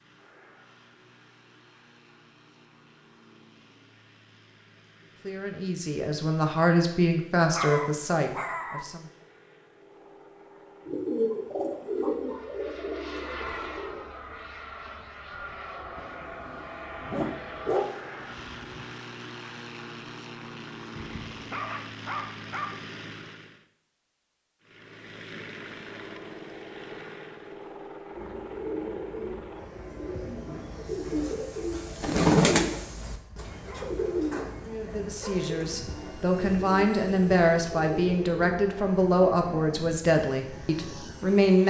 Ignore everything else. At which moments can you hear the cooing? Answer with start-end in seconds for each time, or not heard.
10.8-14.1, 28.1-39.9.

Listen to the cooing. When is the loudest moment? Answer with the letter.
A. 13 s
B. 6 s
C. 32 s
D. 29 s
C.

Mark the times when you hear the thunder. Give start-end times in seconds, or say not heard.
not heard.